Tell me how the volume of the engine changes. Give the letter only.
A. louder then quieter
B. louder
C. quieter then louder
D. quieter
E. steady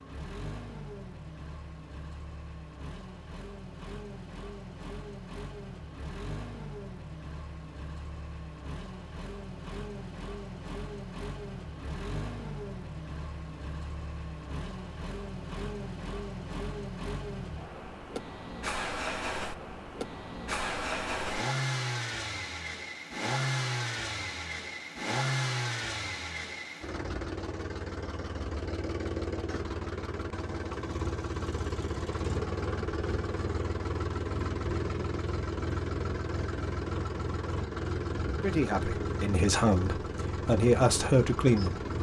B.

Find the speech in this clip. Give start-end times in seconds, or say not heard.
38.3-41.9.